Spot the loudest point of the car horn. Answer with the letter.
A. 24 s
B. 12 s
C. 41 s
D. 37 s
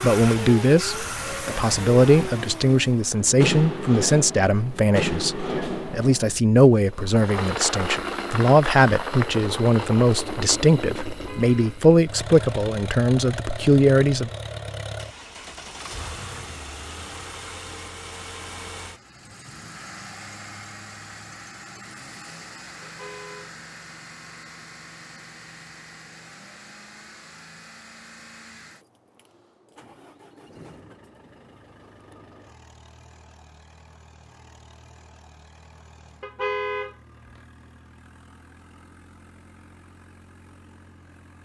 D.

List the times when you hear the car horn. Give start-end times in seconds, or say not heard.
11.1-11.8, 22.8-23.5, 36.2-37.4.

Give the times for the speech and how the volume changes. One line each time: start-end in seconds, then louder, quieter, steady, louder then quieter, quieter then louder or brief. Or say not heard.
0.0-14.3 steady.